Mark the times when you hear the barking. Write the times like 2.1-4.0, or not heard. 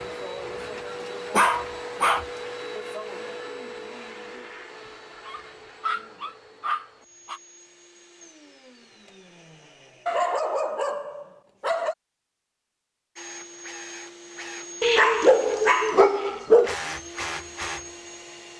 1.3-2.2, 5.2-7.4, 10.1-11.9, 14.8-16.8.